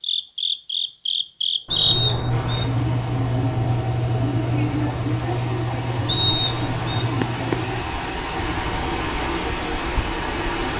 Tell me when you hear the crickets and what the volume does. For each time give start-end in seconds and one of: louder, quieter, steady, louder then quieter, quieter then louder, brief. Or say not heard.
0.0-10.7 quieter.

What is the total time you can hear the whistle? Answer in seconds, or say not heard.
2 s.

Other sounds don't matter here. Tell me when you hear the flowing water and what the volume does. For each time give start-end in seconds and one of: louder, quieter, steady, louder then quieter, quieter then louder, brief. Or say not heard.
2.3-10.7 louder.